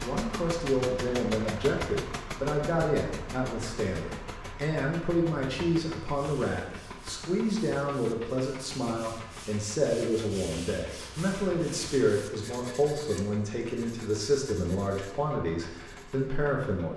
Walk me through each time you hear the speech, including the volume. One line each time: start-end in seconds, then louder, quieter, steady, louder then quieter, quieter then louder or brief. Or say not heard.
0.0-16.9 steady.